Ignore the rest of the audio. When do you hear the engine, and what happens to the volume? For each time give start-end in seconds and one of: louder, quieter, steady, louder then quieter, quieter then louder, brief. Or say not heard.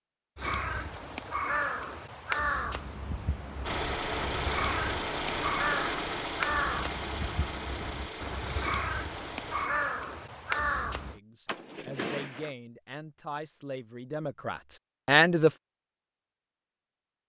3.6-9.7 quieter.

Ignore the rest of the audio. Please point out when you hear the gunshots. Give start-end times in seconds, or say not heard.
11.4-12.6.